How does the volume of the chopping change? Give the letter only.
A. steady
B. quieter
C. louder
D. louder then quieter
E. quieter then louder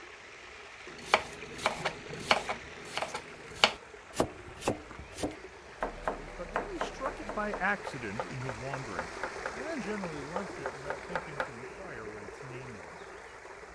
B.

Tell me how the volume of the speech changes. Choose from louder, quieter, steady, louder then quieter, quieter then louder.
quieter.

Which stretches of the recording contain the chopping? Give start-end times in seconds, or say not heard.
0.9-11.5.